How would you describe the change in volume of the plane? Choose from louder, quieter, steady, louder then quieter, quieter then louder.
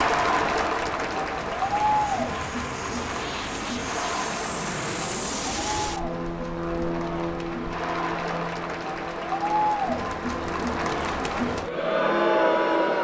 louder then quieter.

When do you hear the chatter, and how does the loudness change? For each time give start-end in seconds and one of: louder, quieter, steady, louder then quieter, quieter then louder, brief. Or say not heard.
0.0-12.9 quieter then louder.